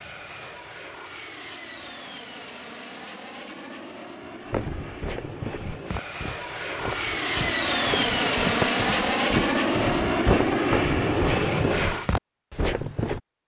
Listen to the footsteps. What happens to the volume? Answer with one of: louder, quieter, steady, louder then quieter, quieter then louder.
louder.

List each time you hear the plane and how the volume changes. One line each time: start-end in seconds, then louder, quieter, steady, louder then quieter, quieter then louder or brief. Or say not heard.
0.0-12.1 louder.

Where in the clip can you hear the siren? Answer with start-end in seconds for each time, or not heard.
not heard.